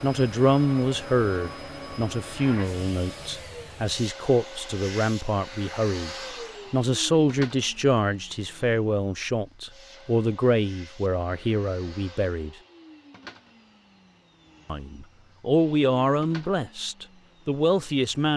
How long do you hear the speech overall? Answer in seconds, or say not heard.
16 s.